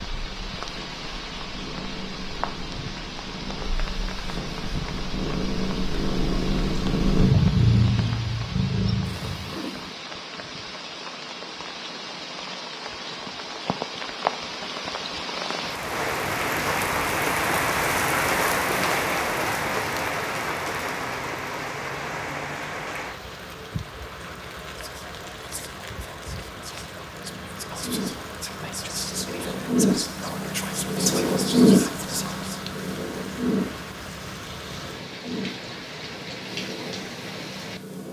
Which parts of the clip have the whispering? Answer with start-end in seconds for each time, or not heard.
24.7-32.6.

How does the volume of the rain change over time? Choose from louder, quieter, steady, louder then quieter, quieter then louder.
louder then quieter.